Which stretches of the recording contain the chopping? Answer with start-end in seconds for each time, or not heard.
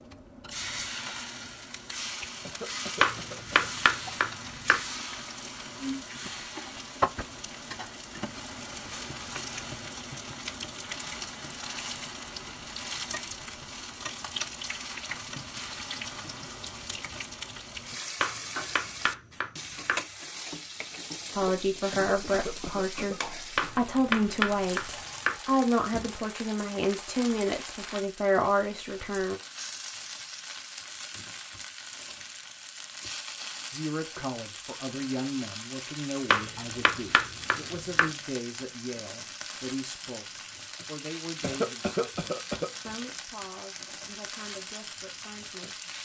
3.0-4.8, 18.2-20.0, 23.6-25.4, 36.3-38.1.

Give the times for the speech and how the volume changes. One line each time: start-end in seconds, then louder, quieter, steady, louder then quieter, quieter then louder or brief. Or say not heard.
21.4-29.4 steady
33.7-45.9 quieter.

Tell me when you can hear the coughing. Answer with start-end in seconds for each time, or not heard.
2.5-3.7, 21.9-23.2, 41.4-42.7.